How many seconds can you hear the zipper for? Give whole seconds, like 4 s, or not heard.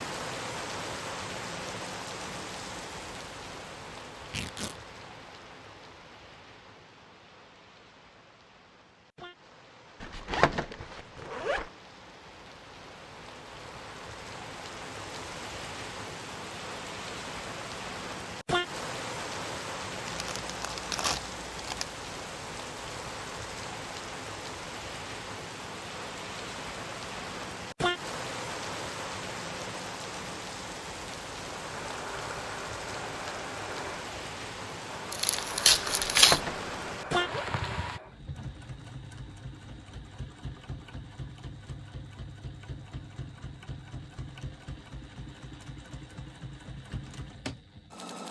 3 s.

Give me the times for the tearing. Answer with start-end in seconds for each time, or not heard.
4.2-4.8, 20.1-21.9, 35.1-36.4.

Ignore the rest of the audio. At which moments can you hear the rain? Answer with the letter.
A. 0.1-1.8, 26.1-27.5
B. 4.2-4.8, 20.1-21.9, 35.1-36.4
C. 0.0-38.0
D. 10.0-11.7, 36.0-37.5
C.